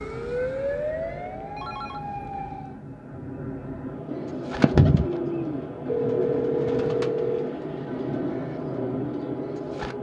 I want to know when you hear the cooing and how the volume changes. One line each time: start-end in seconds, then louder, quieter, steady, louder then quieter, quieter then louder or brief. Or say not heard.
4.1-9.9 quieter.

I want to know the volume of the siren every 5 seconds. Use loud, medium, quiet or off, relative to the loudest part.
loud, off.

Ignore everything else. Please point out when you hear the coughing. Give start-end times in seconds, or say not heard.
not heard.